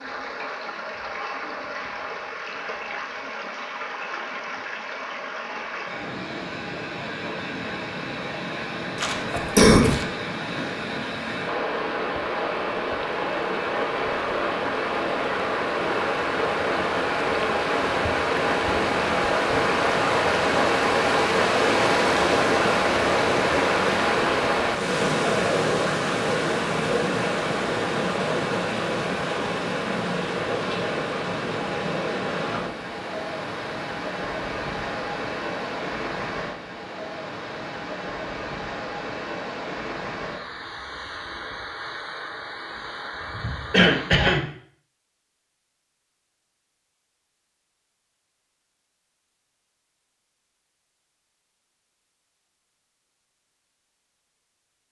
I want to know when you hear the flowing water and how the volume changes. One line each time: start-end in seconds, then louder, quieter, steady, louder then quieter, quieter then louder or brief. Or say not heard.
0.0-44.3 louder then quieter.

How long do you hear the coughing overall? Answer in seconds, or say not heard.
2 s.